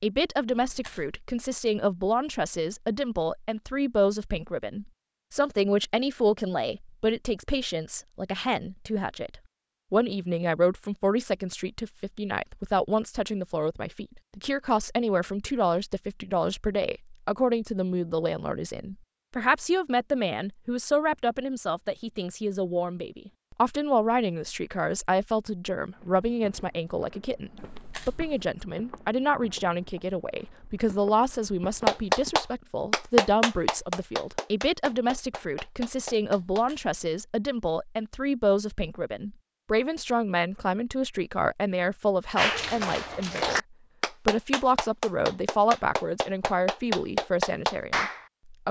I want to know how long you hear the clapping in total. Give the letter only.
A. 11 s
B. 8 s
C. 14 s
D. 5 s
A.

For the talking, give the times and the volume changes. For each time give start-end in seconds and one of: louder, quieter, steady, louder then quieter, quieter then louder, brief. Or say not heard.
0.0-48.6 steady.